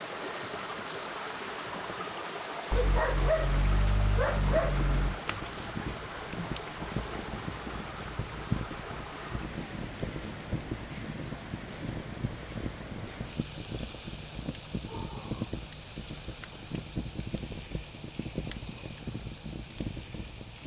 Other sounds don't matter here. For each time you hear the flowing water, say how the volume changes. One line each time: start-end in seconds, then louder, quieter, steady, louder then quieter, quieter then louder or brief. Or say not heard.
0.0-20.6 quieter.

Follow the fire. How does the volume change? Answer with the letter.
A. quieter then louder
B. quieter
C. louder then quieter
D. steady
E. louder
D.